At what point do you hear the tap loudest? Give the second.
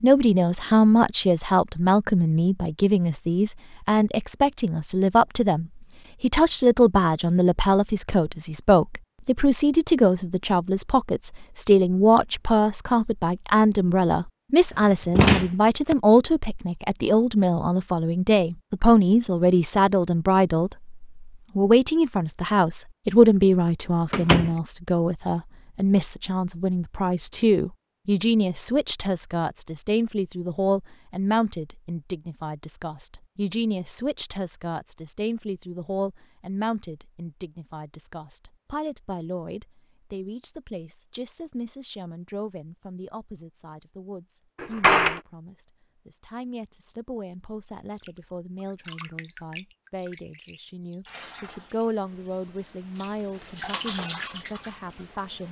54 s.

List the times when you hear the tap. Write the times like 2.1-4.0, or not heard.
48.0-55.4.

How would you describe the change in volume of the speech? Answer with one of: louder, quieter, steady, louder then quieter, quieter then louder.
quieter.